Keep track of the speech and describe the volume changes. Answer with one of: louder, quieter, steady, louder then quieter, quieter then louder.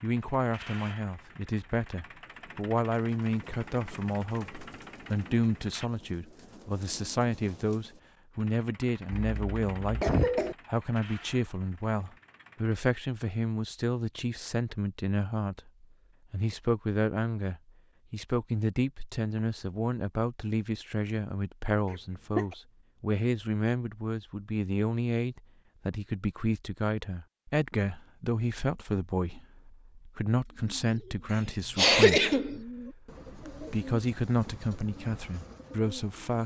steady.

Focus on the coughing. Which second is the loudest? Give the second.
32 s.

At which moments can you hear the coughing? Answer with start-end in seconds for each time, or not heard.
9.1-10.6, 21.9-22.6, 31.8-32.5.